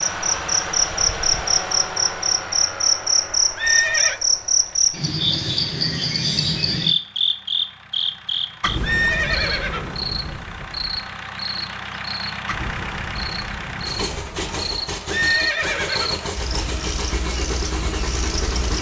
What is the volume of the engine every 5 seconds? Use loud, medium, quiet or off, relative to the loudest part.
loud, quiet, loud, loud.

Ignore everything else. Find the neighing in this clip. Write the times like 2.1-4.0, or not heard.
3.5-4.2, 8.8-10.0, 15.1-16.2.